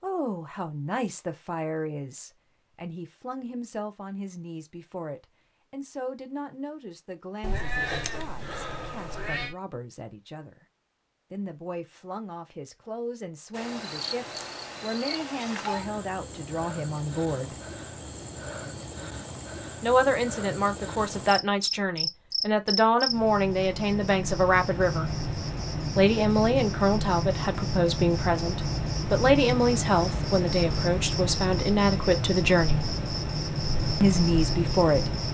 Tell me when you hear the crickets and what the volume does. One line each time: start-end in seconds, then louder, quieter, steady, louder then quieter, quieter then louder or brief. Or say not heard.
13.5-35.2 louder.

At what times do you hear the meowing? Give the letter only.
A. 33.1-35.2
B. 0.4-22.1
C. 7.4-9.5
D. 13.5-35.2
C.